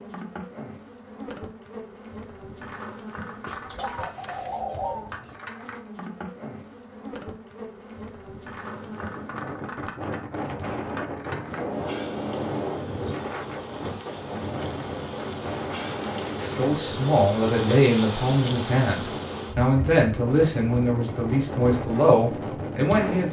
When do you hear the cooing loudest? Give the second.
5 s.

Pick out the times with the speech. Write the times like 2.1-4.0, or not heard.
16.4-23.2.